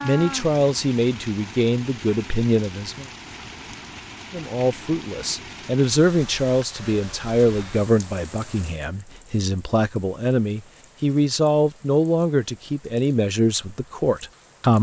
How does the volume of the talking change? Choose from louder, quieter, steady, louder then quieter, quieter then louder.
steady.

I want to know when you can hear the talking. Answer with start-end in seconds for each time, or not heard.
0.0-3.0, 4.3-14.7.